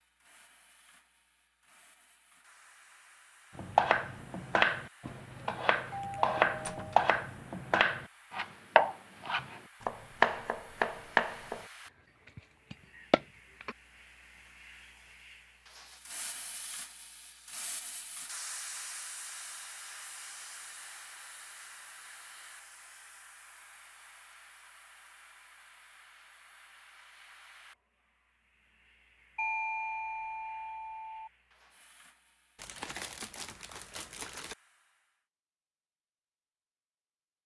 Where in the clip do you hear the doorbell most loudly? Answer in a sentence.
The volume of the doorbell peaks at 30 seconds.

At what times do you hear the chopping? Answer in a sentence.
The chopping can be heard from 3.5 to 13.8 s.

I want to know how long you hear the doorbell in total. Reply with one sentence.
You can hear the doorbell for 3 seconds altogether.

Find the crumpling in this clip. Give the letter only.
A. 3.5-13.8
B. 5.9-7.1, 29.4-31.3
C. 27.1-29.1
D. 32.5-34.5
D.